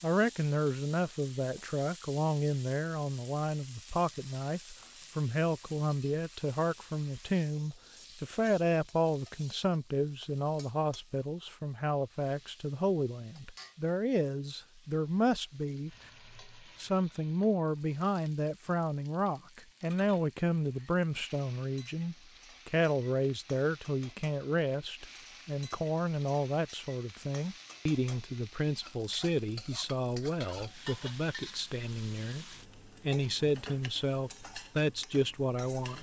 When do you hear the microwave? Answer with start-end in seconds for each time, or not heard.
not heard.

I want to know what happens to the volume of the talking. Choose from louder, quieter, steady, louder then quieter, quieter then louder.
steady.